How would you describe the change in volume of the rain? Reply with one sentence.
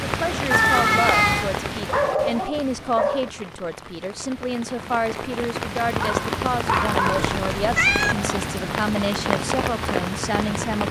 The volume of the rain goes down, then up.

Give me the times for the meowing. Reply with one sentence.
The meowing can be heard from 0.5 to 1.5 s and from 7.2 to 8.2 s.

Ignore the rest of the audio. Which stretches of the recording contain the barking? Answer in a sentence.
The barking can be heard from 1.9 to 3.3 s and from 6.0 to 7.3 s.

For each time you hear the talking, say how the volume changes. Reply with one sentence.
The talking can be heard from 0.0 to 10.8 s, at a steady volume.